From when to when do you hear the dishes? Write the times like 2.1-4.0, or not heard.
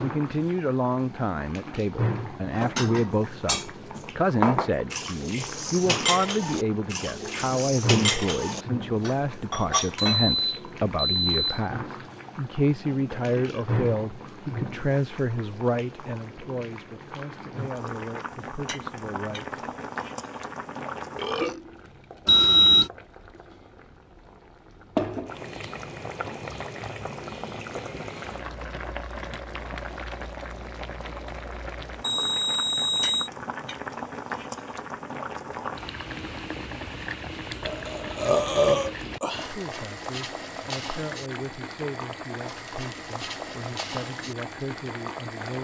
2.5-10.3.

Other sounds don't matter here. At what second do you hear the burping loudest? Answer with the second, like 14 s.
39 s.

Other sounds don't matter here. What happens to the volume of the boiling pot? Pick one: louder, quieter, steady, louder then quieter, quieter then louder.
steady.